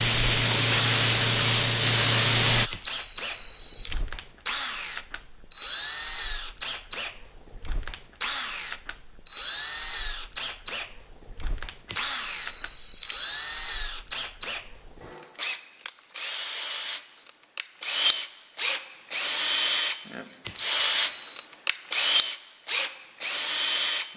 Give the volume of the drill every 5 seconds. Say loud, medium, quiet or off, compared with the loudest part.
medium, medium, medium, loud, loud.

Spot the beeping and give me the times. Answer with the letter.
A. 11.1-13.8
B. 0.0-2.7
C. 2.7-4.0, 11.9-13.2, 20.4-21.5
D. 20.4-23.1
C.